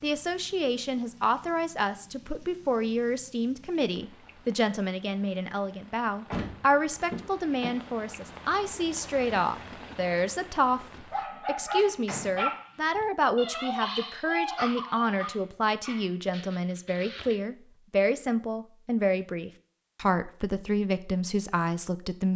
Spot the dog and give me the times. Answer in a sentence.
The dog can be heard from 11.1 to 17.4 s.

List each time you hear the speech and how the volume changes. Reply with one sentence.
The speech can be heard from 0.0 to 22.3 s, at a steady volume.